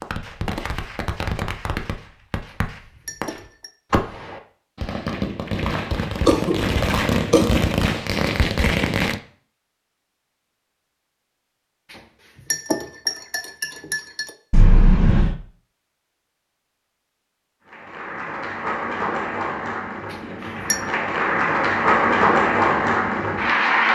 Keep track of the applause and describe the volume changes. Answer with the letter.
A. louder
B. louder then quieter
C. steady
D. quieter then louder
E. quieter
A.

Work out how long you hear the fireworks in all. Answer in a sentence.
The fireworks can be heard for 9 seconds in total.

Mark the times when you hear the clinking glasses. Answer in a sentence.
The clinking glasses can be heard from 2.5 to 3.7 s, from 11.9 to 14.3 s and from 20.1 to 20.8 s.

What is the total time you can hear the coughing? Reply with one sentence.
You can hear the coughing for 2 seconds altogether.